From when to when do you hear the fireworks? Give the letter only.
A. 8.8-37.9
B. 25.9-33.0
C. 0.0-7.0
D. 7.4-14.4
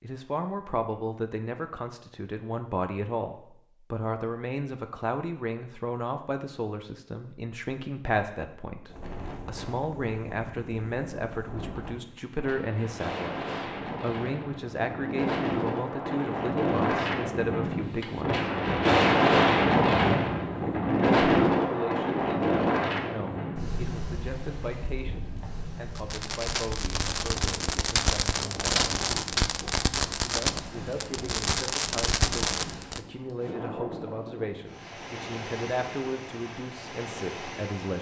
B.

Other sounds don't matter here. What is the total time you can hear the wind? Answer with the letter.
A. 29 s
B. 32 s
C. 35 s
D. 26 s
A.